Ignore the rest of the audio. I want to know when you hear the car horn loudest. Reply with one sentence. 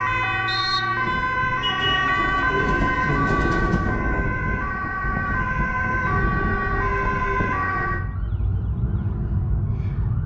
The loudest moment of the car horn is at 2 seconds.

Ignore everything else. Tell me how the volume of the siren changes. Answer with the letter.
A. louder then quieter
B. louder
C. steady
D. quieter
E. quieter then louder
D.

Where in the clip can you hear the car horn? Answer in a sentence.
The car horn can be heard from 1.6 to 2.1 s and from 6.0 to 7.5 s.